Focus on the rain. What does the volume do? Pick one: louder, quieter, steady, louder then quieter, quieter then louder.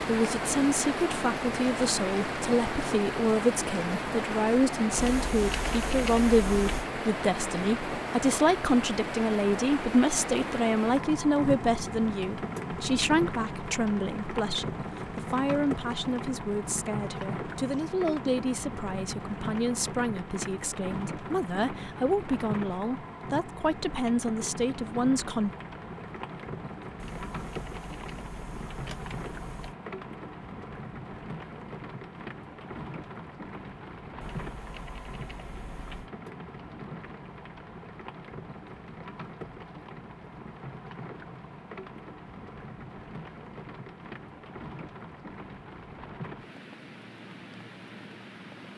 quieter.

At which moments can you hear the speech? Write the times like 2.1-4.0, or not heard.
0.1-25.5.